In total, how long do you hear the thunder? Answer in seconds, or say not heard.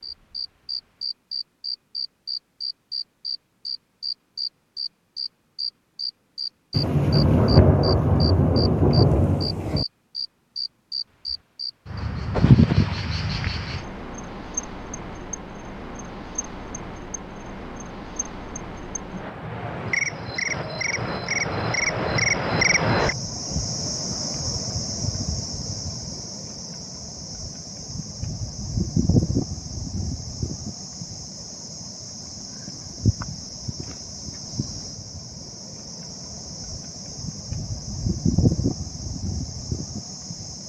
3 s.